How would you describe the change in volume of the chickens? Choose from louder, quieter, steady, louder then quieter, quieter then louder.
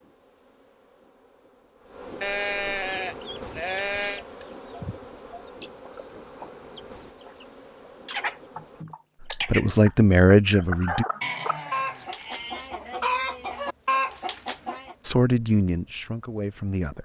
louder.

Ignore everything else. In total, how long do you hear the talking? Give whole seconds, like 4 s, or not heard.
4 s.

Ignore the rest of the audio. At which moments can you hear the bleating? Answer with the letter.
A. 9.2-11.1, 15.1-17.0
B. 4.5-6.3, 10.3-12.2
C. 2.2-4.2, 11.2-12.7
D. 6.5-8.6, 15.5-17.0
C.